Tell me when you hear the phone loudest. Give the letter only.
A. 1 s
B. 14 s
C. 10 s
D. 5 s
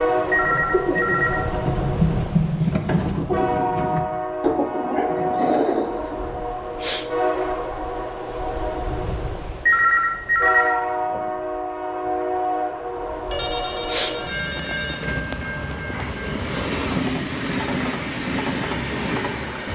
C.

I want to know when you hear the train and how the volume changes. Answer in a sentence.
The train can be heard from 0.0 to 19.6 s, at a steady volume.